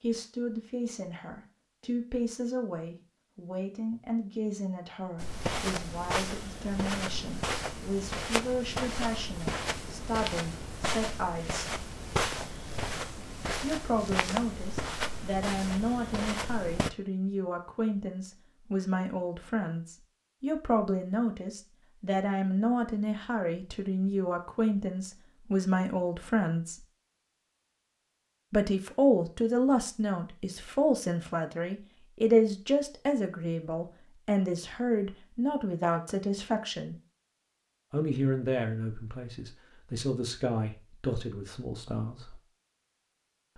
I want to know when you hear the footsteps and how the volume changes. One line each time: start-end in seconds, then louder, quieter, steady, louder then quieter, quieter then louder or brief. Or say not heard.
5.2-16.9 steady.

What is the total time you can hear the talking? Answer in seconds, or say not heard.
38 s.